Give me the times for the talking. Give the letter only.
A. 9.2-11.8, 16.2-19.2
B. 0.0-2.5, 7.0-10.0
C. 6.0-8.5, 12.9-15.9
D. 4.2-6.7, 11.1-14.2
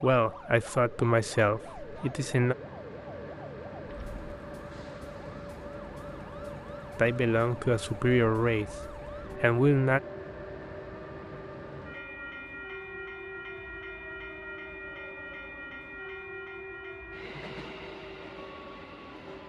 B.